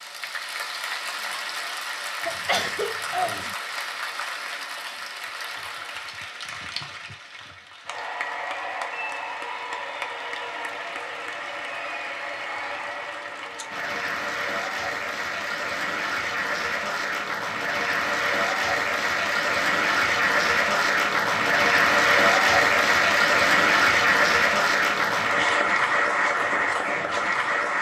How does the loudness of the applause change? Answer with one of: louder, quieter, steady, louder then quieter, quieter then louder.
louder.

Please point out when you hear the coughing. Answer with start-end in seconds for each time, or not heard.
2.2-3.5.